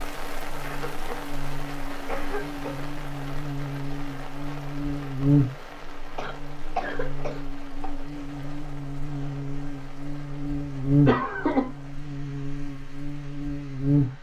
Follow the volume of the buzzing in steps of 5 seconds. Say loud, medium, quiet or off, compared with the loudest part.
medium, loud, loud.